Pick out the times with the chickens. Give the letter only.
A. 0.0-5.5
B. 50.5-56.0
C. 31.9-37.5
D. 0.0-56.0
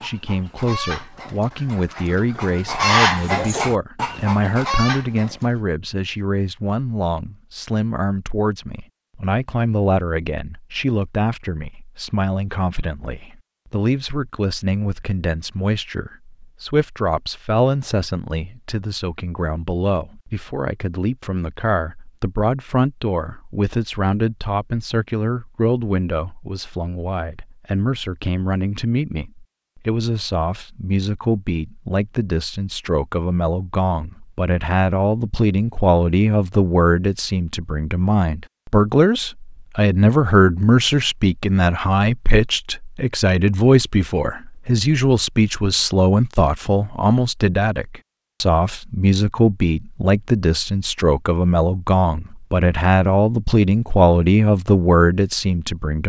A.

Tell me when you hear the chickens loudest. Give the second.
3 s.